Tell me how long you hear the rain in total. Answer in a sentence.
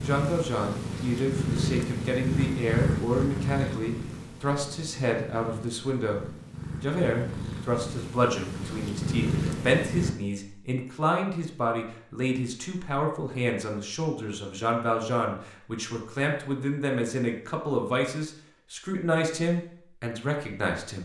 The rain can't be heard in this clip.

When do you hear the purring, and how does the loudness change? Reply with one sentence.
The purring can be heard from 0.0 to 10.2 s, getting quieter then louder.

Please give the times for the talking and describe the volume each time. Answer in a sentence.
The talking can be heard from 0.0 to 21.0 s, at a steady volume.